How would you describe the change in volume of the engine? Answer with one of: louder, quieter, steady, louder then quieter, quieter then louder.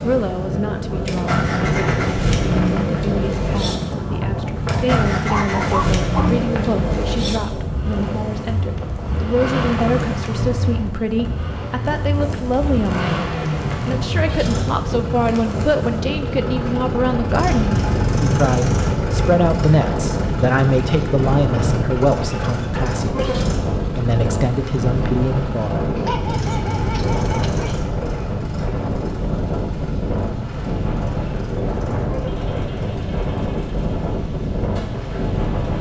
quieter.